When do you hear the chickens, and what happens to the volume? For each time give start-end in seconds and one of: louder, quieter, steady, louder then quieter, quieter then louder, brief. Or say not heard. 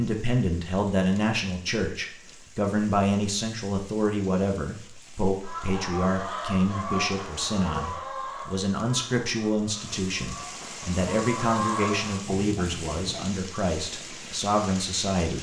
5.4-13.3 quieter then louder.